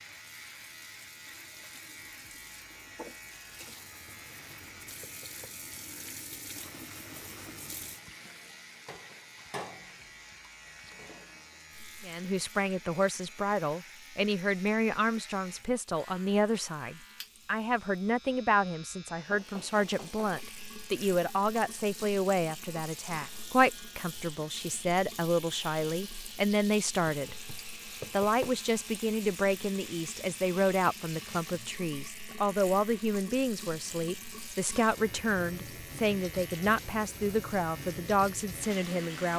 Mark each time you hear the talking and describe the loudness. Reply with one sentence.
The talking can be heard from 12.1 to 39.3 s, at a steady volume.